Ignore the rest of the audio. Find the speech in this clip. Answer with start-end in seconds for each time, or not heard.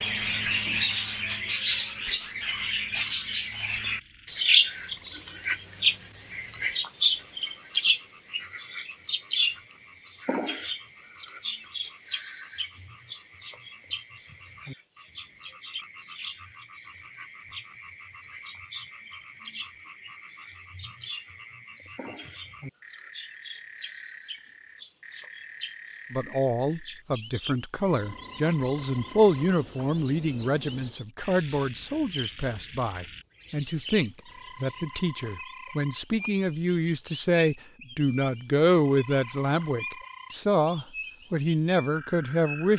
26.1-42.7.